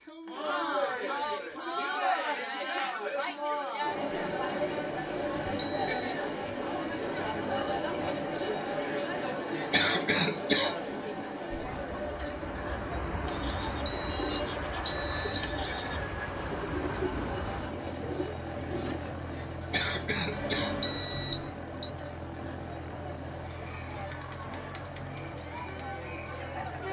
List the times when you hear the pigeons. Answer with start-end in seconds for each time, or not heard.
13.2-19.0.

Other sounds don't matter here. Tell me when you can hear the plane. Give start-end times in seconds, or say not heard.
11.6-26.8.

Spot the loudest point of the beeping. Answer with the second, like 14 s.
21 s.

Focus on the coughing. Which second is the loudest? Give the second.
10 s.